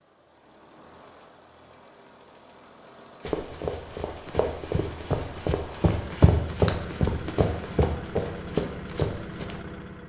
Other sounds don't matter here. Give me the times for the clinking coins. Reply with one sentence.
You can't hear the clinking coins here.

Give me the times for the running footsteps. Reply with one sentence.
You can hear the running footsteps from 3.2 to 9.6 s.